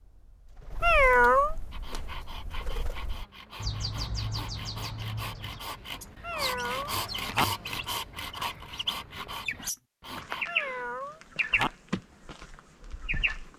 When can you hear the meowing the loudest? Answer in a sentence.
The volume of the meowing peaks at 1 second.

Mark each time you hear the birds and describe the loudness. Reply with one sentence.
The birds can be heard from 0.0 to 13.5 s, getting louder.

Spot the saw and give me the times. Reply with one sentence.
You can hear the saw from 1.7 to 10.4 s.